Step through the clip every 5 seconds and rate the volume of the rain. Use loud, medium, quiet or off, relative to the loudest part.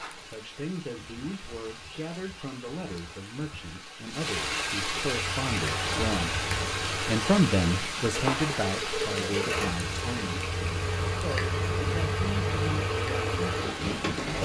medium, loud, medium.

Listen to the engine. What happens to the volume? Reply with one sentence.
The loudness of the engine goes up.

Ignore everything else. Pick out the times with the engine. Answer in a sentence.
The engine can be heard from 5.1 to 14.4 s.